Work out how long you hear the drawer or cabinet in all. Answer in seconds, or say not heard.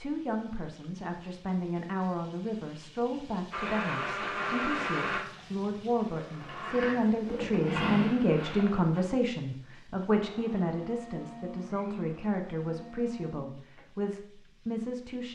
3 s.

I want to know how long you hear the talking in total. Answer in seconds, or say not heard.
15 s.